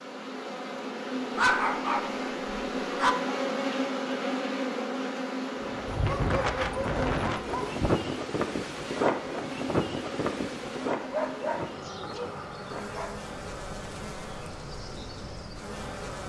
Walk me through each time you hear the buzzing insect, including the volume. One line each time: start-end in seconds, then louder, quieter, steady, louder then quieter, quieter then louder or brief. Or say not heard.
0.0-16.2 quieter.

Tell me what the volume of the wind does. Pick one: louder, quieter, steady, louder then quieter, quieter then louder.
quieter.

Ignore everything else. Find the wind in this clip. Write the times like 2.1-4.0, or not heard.
5.6-16.2.